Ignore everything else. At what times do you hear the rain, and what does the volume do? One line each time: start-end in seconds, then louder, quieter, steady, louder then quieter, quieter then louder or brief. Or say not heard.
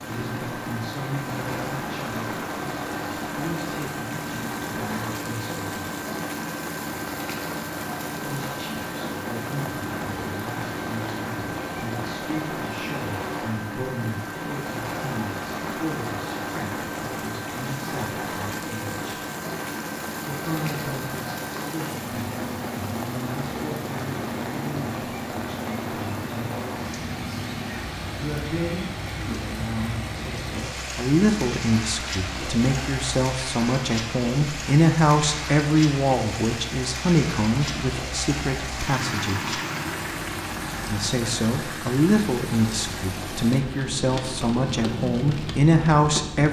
0.0-46.4 steady.